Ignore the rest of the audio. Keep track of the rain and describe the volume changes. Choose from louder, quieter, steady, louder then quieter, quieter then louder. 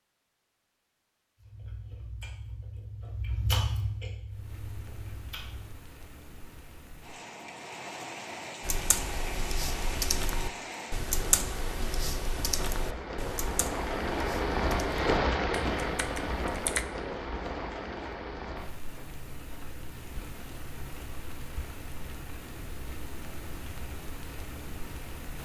louder then quieter.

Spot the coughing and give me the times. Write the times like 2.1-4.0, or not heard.
not heard.